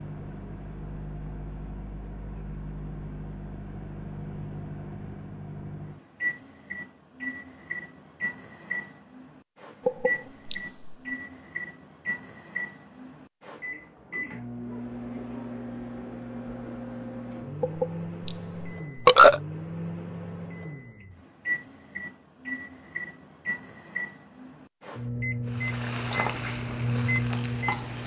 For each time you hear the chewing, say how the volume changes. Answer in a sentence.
You can't hear the chewing here.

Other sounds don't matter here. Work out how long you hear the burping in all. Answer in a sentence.
The burping can be heard for 3 seconds in total.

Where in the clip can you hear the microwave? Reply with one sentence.
You can hear the microwave from 0.0 to 28.0 s.